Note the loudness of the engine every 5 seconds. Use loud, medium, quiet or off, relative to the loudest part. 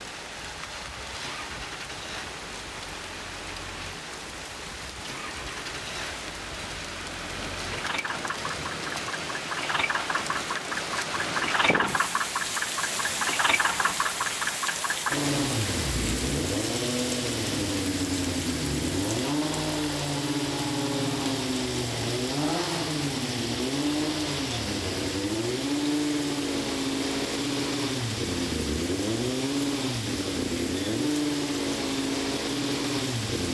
quiet, medium, loud, loud, loud, loud, loud.